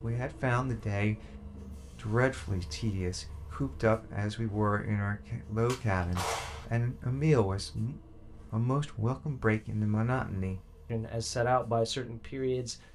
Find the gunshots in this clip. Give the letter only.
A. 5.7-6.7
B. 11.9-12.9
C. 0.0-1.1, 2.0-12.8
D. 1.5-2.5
A.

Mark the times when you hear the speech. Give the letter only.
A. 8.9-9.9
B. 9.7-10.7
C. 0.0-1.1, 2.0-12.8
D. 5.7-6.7
C.